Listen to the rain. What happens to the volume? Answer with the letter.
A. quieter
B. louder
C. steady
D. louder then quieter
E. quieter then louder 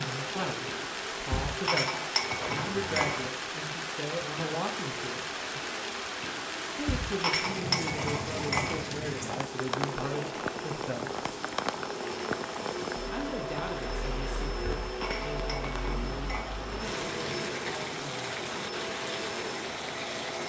C.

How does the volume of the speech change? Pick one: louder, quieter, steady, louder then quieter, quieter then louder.
quieter.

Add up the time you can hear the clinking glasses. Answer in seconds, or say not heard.
6 s.